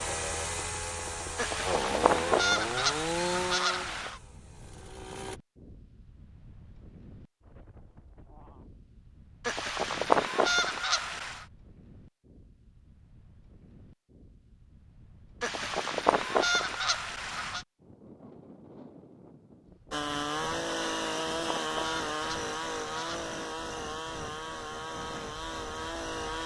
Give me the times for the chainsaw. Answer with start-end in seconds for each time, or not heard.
0.0-5.4, 19.9-26.4.